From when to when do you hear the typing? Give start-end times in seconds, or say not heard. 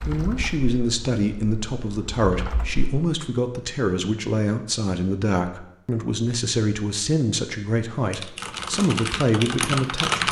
0.0-3.0, 8.1-10.2.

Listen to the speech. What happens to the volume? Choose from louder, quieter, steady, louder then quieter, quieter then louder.
steady.